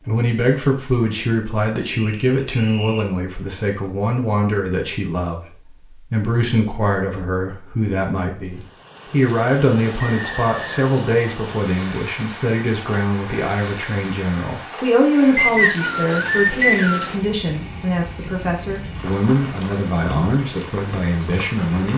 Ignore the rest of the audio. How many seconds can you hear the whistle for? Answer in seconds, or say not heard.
4 s.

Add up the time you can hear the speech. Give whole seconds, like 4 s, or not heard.
22 s.